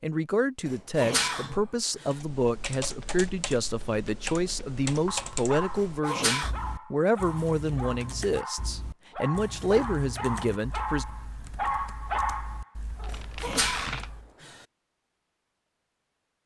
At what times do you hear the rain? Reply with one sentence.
You can't hear the rain here.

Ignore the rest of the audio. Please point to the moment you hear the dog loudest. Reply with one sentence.
The volume of the dog peaks at 12 seconds.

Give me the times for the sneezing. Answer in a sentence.
You can hear the sneezing from 0.7 to 2.2 s, from 5.8 to 6.5 s and from 13.1 to 14.7 s.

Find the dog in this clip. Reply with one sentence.
You can hear the dog from 4.8 to 13.2 s.